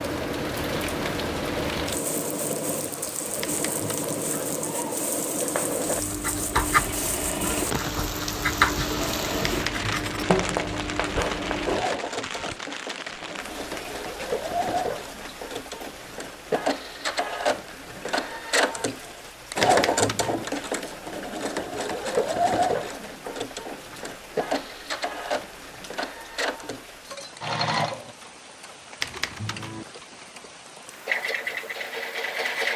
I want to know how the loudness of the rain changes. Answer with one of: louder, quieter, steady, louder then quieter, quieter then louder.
quieter.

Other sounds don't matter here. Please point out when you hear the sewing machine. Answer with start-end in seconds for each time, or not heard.
0.0-28.1, 31.1-32.7.